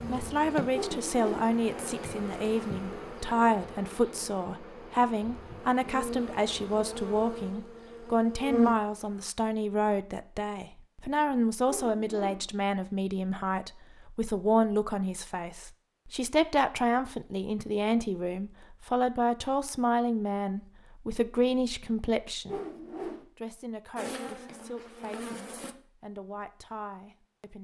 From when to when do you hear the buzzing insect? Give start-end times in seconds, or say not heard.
0.0-9.3, 23.9-25.8.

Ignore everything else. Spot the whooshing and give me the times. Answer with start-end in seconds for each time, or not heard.
0.7-1.4, 11.7-12.4, 22.4-23.2.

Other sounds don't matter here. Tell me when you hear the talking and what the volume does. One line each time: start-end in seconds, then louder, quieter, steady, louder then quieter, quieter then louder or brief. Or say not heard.
0.1-27.5 quieter.